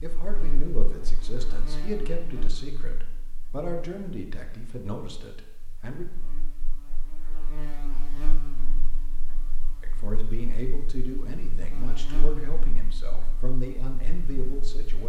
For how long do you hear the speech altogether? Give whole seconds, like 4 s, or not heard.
11 s.